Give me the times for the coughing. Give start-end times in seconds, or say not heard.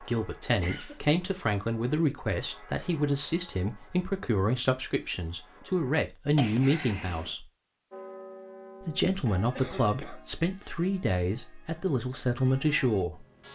0.6-1.0, 6.3-7.3, 9.6-10.2.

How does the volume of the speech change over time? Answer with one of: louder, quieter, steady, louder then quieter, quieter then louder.
steady.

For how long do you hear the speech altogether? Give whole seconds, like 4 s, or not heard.
12 s.